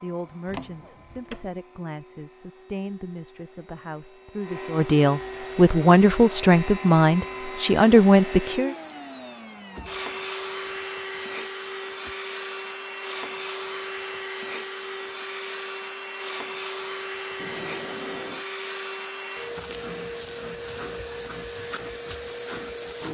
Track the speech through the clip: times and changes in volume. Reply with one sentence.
You can hear the speech from 0.0 to 8.8 s, getting louder.